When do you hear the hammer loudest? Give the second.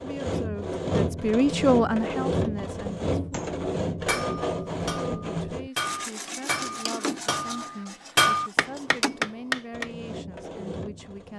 8 s.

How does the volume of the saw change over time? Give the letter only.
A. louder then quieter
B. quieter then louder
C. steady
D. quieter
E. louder
D.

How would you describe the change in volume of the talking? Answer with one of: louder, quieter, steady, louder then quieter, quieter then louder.
quieter.